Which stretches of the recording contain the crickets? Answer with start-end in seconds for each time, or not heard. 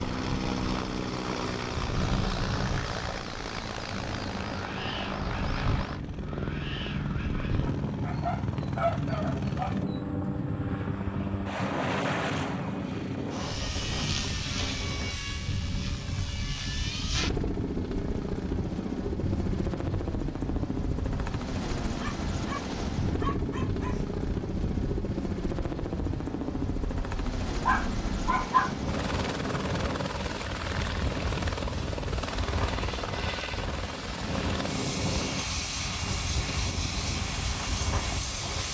not heard.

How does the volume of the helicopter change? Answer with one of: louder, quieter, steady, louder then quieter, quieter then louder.
steady.